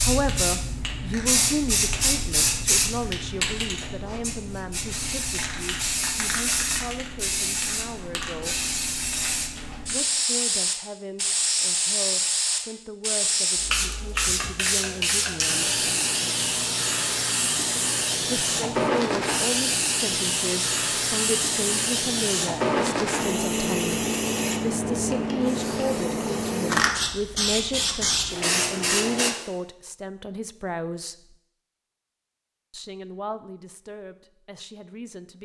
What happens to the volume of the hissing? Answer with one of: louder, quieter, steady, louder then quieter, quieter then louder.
steady.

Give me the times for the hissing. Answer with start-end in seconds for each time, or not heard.
0.0-29.3.